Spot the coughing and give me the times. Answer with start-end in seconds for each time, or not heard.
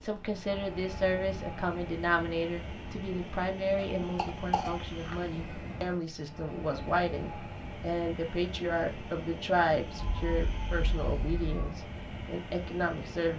3.8-5.2.